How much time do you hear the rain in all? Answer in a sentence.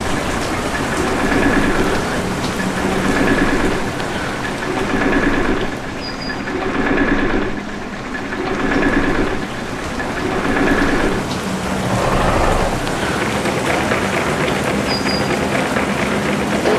You can hear the rain for 17 seconds altogether.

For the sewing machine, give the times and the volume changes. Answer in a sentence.
The sewing machine can be heard from 0.0 to 16.7 s, at a steady volume.